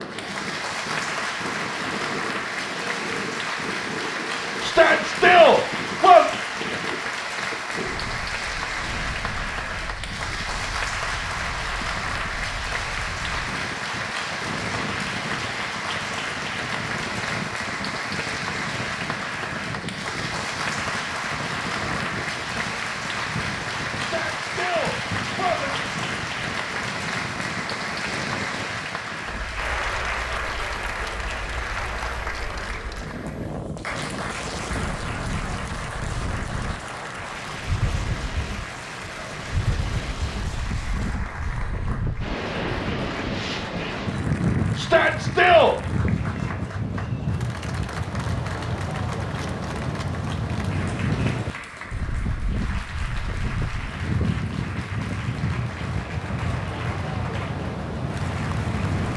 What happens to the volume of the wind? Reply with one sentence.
The loudness of the wind goes up.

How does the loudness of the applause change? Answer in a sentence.
The loudness of the applause goes down.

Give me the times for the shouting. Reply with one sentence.
You can hear the shouting from 4.6 to 6.3 s, from 23.9 to 25.8 s and from 44.8 to 45.8 s.